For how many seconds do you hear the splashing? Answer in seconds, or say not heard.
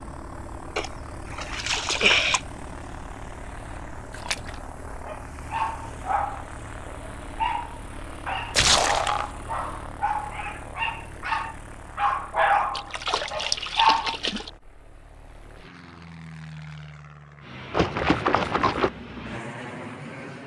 6 s.